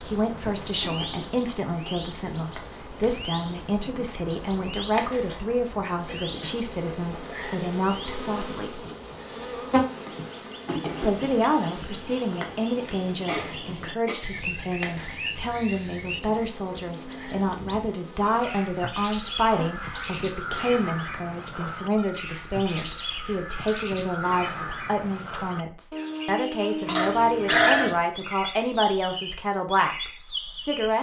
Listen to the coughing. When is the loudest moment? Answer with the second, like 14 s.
28 s.